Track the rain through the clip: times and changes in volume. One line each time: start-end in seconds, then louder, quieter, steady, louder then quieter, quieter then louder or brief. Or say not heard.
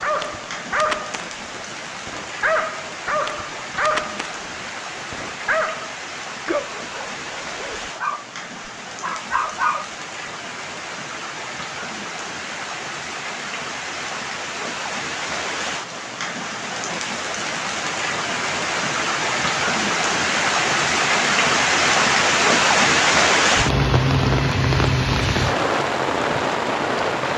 0.0-27.3 louder.